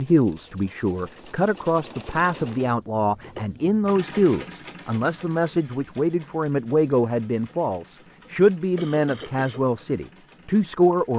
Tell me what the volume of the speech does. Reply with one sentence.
The volume of the speech stays about the same.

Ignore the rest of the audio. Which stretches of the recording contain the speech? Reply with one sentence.
You can hear the speech from 0.0 to 11.1 s.